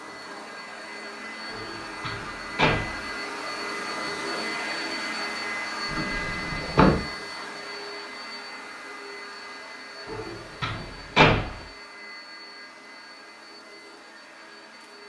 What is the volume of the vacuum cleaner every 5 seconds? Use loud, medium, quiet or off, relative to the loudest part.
loud, loud, medium.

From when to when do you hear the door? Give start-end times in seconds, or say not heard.
1.5-3.0, 5.9-7.0, 10.1-11.6.